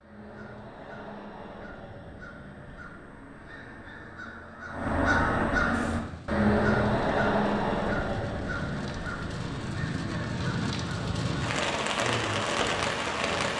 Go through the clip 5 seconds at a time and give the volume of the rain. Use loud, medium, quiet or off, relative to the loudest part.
off, medium, loud.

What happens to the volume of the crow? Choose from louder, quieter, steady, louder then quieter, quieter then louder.
louder then quieter.